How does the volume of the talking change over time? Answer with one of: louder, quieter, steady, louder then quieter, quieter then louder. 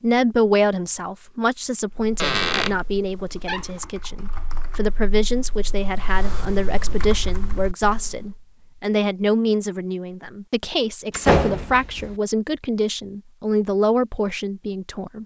steady.